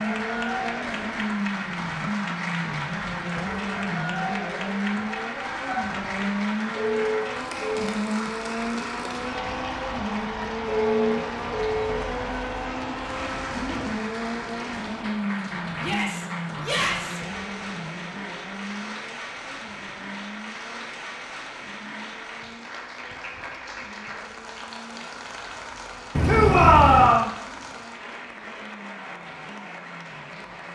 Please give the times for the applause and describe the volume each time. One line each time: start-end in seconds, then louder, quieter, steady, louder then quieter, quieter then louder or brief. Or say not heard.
0.0-30.6 quieter.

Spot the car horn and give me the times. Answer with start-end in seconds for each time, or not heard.
6.8-7.9, 10.7-12.0, 26.1-27.2.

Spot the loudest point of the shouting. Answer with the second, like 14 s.
27 s.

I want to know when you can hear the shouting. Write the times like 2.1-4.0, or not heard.
4.8-5.8, 15.8-17.2, 26.2-27.3.